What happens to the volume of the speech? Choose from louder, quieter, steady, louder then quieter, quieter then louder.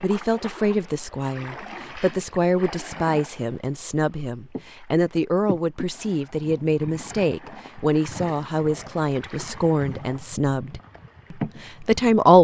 steady.